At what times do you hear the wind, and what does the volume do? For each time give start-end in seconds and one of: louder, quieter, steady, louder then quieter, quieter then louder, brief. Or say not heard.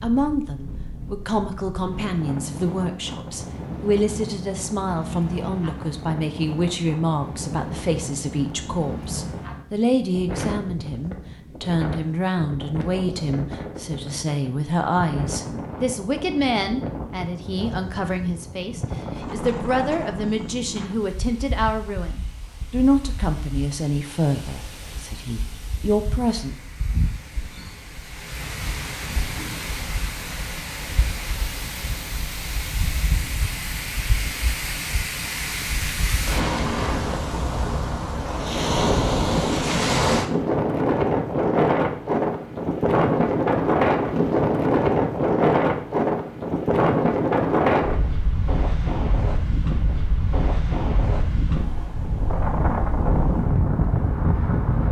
0.0-54.8 louder.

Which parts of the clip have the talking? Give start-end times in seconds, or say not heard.
0.0-26.6.